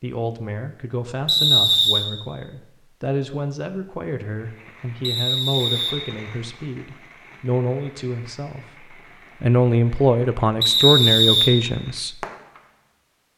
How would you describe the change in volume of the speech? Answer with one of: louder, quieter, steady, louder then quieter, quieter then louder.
louder.